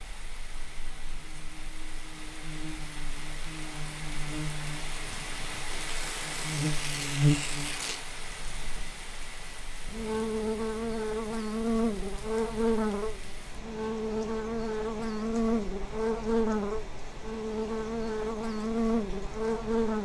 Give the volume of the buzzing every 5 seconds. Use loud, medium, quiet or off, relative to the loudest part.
quiet, loud, loud, loud.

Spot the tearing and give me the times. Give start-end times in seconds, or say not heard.
5.8-8.1.